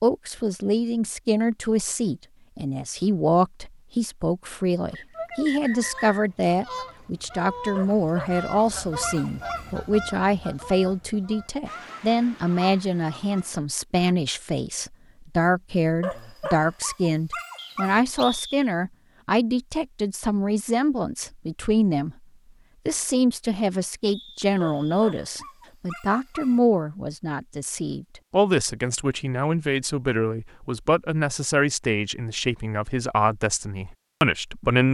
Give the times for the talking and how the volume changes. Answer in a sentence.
The talking can be heard from 0.0 to 22.1 s, at a steady volume; and from 22.9 to 34.8 s, at a steady volume.